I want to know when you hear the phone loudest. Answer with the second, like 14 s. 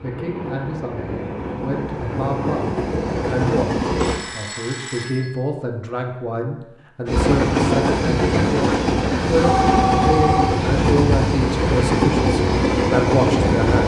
10 s.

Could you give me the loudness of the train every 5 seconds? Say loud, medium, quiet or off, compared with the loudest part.
medium, loud, loud.